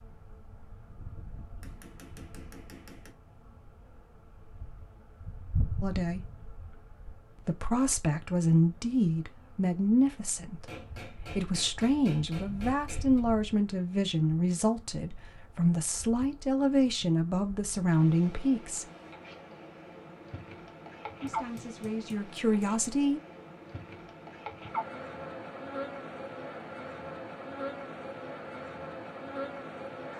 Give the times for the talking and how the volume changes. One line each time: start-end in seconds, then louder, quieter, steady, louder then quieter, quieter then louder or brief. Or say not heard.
5.8-6.3 brief
7.3-18.9 steady
21.2-23.2 brief.